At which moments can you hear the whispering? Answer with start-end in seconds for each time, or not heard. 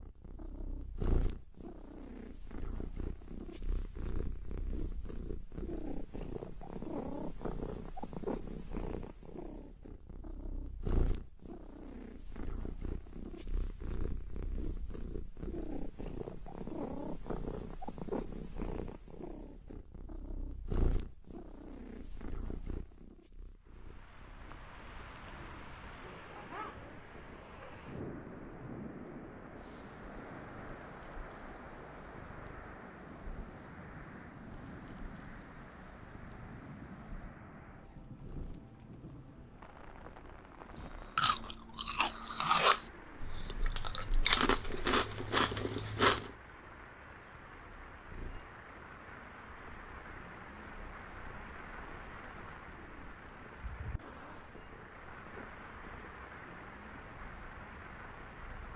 not heard.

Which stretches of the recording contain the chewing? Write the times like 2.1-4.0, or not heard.
40.7-46.3.